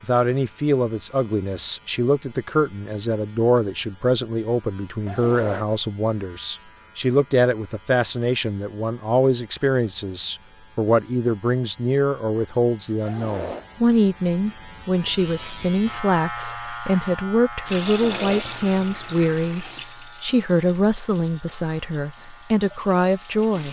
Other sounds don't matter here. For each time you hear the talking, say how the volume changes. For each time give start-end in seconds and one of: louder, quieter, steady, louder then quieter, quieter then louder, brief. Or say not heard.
0.0-23.6 steady.